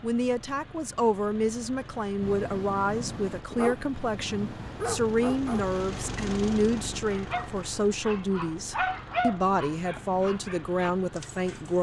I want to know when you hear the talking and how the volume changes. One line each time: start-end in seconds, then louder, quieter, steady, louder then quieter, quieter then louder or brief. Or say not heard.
0.0-11.7 steady.